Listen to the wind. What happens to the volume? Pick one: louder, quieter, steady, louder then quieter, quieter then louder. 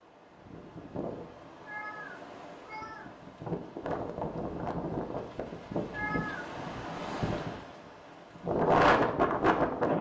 louder.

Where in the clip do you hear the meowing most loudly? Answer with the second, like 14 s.
6 s.